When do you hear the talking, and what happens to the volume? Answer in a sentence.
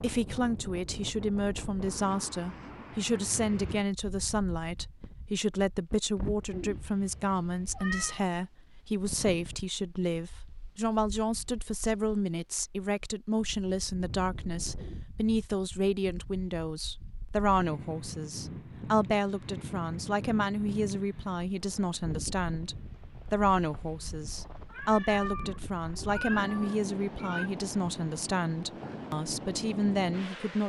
You can hear the talking from 0.0 to 30.6 s, at a steady volume.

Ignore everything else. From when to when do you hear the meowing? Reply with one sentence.
The meowing can be heard from 6.5 to 8.2 s and from 24.7 to 27.5 s.